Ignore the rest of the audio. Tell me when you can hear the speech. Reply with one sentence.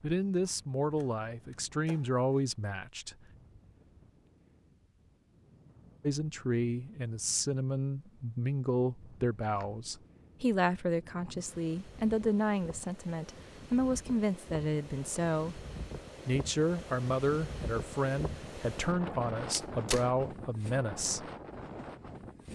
The speech can be heard from 0.0 to 3.1 s, from 6.0 to 15.7 s and from 16.2 to 21.3 s.